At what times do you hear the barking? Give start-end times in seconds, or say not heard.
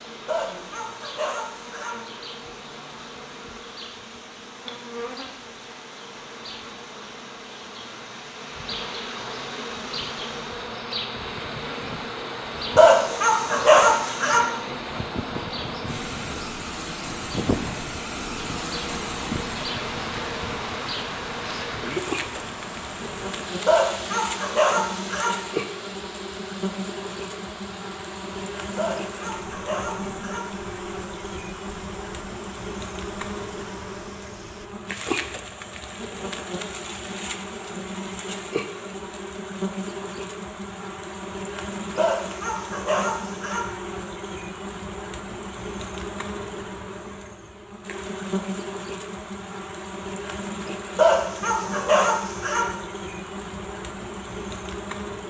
0.2-1.9, 12.8-14.4, 23.6-25.4, 28.8-30.4, 42.0-43.6, 51.0-52.6.